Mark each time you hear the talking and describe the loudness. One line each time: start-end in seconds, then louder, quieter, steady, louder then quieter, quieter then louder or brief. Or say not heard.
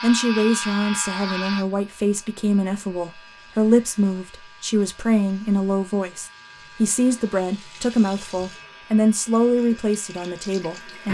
0.0-11.1 steady.